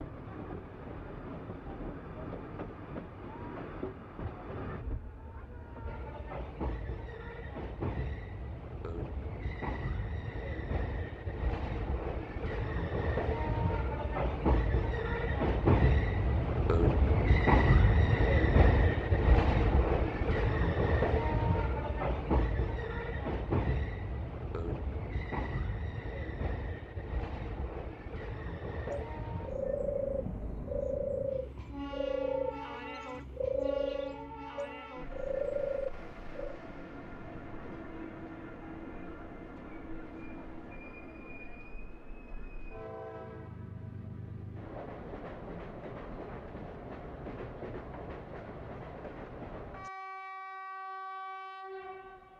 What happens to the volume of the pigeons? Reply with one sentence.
The volume of the pigeons stays about the same.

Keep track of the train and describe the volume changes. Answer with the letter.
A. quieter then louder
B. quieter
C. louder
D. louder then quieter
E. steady
D.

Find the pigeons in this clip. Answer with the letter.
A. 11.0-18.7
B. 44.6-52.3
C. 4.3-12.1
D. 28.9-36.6
D.